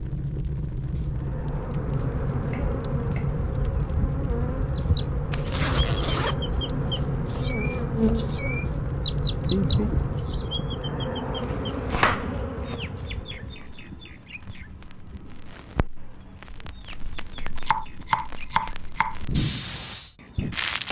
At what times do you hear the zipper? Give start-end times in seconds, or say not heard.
5.3-6.3.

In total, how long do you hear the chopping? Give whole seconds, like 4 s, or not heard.
6 s.